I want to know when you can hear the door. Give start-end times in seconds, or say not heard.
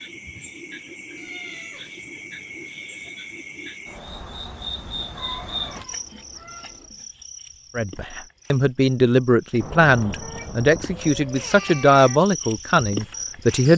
not heard.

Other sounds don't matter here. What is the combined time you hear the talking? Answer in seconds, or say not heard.
6 s.